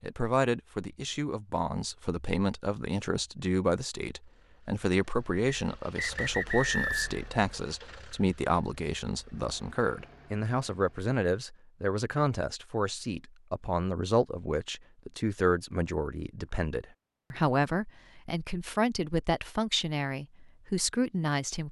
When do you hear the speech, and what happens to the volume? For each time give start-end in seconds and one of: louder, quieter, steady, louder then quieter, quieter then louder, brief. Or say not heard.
0.0-21.6 steady.